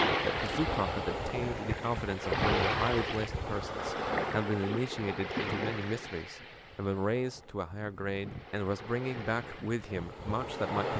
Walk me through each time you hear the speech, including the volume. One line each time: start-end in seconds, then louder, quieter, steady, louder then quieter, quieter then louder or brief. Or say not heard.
0.1-10.9 steady.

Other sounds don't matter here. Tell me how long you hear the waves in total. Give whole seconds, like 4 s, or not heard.
11 s.